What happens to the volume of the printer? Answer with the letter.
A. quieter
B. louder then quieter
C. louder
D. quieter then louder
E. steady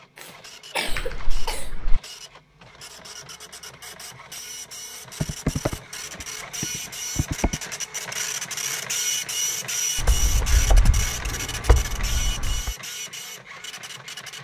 B.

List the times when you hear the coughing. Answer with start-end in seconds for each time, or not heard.
0.1-1.7.